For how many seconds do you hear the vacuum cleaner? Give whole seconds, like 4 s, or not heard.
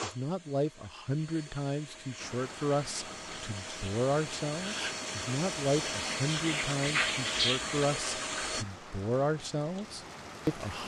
9 s.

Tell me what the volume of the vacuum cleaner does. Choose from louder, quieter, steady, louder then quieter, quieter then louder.
louder.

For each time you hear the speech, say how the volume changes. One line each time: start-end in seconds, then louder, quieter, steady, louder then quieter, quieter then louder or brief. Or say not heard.
0.0-10.8 steady.